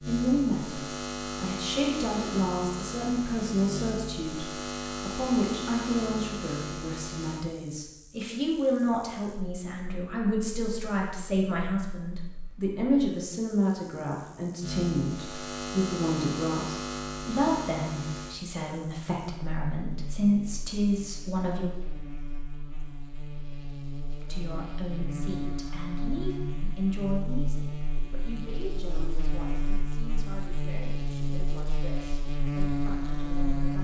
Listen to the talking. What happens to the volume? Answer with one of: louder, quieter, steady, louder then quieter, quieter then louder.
quieter.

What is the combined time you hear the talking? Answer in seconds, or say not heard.
31 s.